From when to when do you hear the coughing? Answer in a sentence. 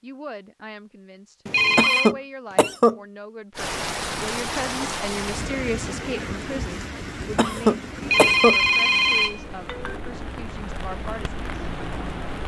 You can hear the coughing from 1.8 to 3.0 s and from 7.3 to 8.6 s.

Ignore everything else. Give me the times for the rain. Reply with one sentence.
The rain can be heard from 3.5 to 12.4 s.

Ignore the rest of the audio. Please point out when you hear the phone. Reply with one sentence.
You can hear the phone from 1.4 to 2.1 s and from 8.0 to 10.0 s.